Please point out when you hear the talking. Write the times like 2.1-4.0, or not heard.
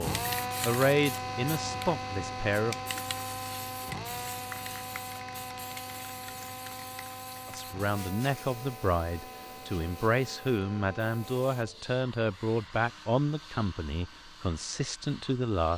0.0-2.8, 7.5-15.7.